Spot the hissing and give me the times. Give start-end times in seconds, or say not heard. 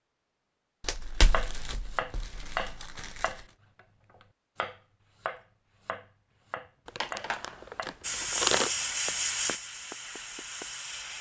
8.0-11.1.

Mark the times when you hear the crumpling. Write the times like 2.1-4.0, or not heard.
0.8-3.5, 6.8-8.7.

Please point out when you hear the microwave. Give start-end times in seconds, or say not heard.
not heard.